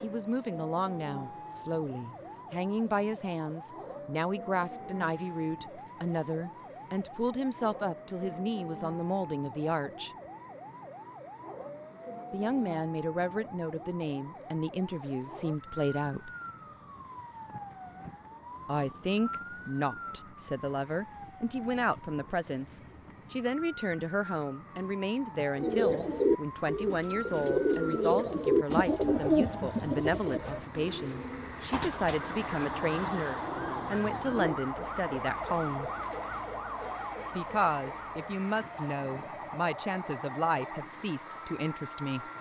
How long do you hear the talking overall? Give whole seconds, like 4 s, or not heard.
36 s.